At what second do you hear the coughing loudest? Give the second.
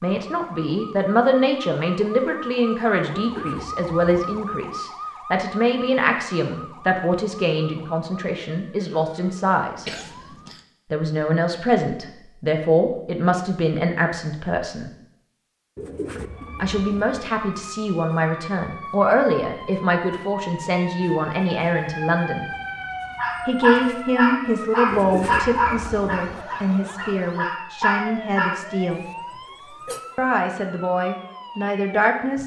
10 s.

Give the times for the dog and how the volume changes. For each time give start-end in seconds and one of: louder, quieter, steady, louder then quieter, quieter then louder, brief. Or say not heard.
23.1-28.6 quieter then louder.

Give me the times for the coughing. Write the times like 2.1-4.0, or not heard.
9.8-10.6, 28.9-30.0.